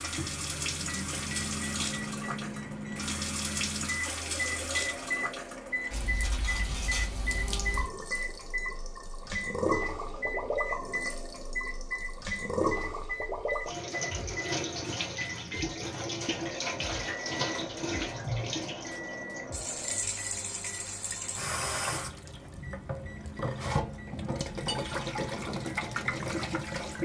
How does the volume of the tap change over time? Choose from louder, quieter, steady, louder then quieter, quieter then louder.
steady.